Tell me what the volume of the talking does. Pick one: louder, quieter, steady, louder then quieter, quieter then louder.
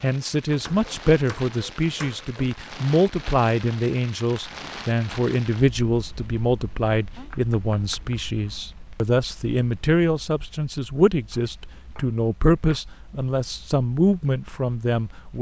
steady.